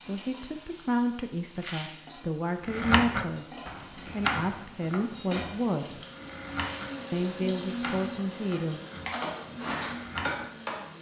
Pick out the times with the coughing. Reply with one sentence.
The coughing can't be heard in this clip.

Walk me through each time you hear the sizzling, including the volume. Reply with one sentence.
The sizzling can be heard from 0.0 to 10.9 s, getting louder.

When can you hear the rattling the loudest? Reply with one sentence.
The loudest moment of the rattling is at 2 seconds.